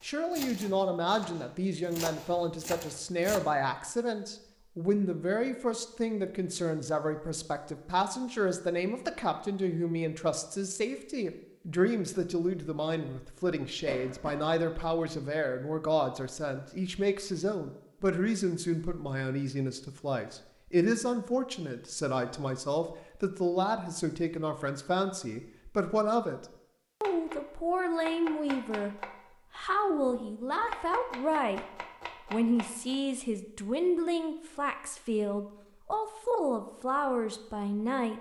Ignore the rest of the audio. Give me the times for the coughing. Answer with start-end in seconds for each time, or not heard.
13.8-14.4.